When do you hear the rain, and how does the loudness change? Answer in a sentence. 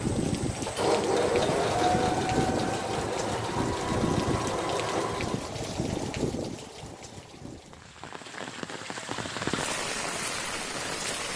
The rain can be heard from 0.0 to 11.3 s, getting quieter then louder.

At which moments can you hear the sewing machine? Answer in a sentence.
You can hear the sewing machine from 0.0 to 5.5 s.